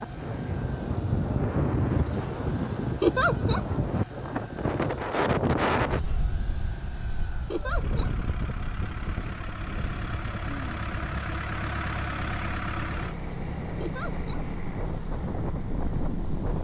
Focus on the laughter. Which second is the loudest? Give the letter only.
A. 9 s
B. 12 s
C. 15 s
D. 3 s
D.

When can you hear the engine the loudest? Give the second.
12 s.